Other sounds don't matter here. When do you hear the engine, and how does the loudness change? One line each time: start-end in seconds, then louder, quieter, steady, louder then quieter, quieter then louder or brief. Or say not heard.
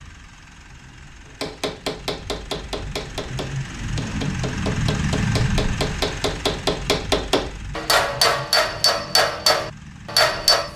0.0-10.7 louder then quieter.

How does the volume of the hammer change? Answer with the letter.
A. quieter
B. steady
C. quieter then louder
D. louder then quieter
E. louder
E.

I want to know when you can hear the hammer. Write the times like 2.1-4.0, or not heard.
1.4-10.7.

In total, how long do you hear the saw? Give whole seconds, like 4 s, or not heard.
not heard.